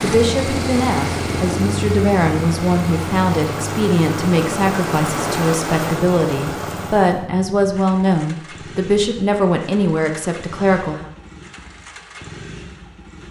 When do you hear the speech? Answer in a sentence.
You can hear the speech from 0.0 to 11.1 s.